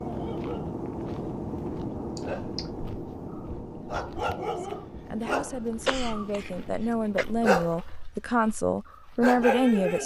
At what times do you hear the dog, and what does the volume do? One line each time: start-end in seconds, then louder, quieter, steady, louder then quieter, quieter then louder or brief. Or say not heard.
0.0-10.0 louder.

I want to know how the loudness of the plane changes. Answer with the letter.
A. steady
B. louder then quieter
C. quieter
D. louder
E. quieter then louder
C.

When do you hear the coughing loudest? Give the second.
6 s.